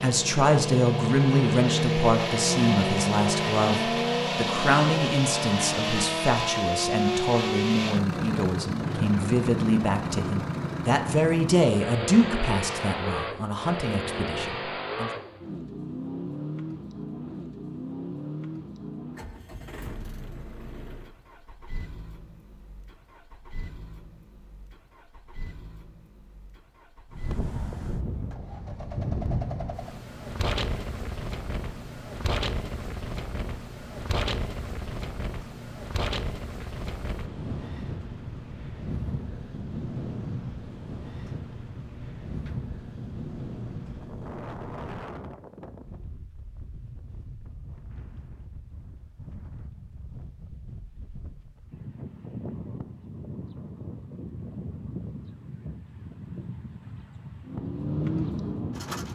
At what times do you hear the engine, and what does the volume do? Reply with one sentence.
You can hear the engine from 0.0 to 45.0 s, getting quieter; and briefly from 57.4 to 59.1 s.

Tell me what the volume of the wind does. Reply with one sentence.
The loudness of the wind goes down, then up.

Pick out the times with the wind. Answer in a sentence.
You can hear the wind from 27.1 to 59.1 s.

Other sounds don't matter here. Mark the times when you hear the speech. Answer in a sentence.
You can hear the speech from 0.0 to 15.1 s.